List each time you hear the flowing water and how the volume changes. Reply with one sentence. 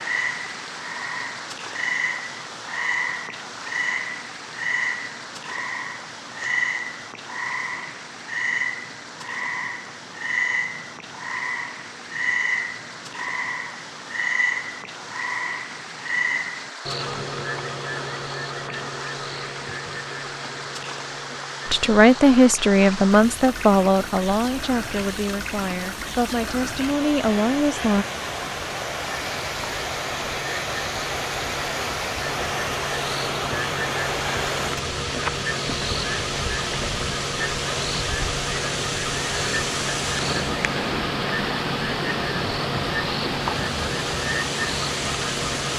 You can hear the flowing water from 0.0 to 45.7 s, getting louder.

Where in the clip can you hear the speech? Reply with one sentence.
You can hear the speech from 21.6 to 28.1 s.